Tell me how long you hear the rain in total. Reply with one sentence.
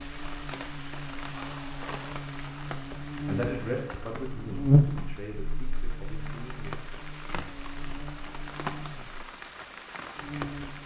You can hear the rain for 11 seconds altogether.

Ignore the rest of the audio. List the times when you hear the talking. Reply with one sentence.
You can hear the talking from 3.2 to 6.8 s.